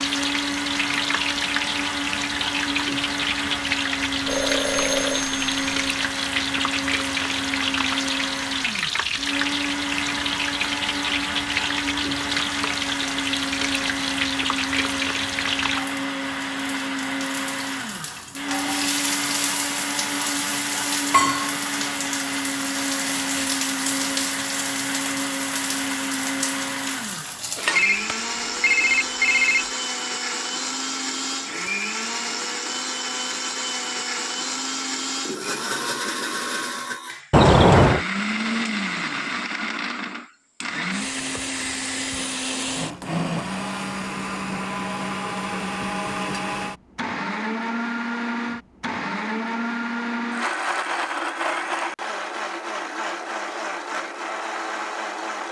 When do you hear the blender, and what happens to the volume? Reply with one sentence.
The blender can be heard from 0.0 to 55.4 s, at a steady volume.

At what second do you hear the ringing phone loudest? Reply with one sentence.
The volume of the ringing phone peaks at 38 seconds.